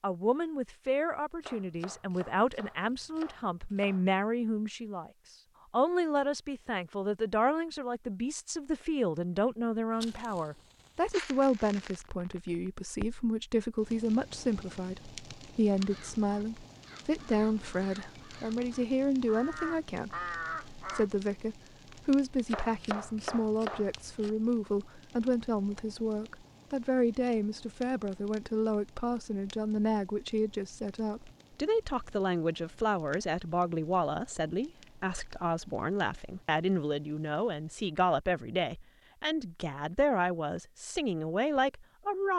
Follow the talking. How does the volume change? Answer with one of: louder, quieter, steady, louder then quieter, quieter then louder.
steady.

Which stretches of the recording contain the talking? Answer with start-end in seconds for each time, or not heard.
0.0-5.1, 5.7-42.3.